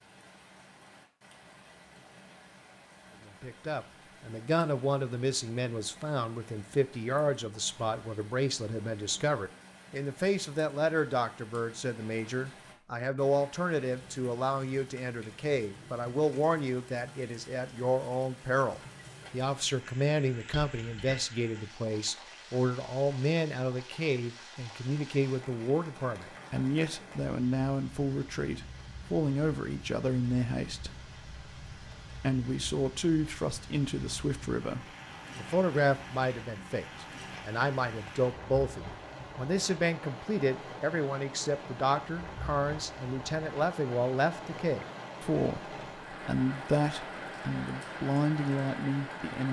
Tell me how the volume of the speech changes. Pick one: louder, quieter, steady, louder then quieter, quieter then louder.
steady.